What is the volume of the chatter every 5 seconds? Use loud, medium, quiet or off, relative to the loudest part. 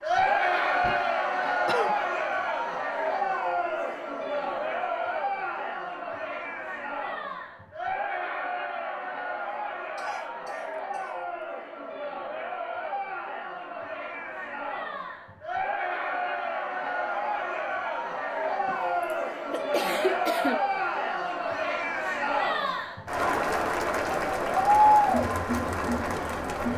loud, medium, medium, medium, loud, loud.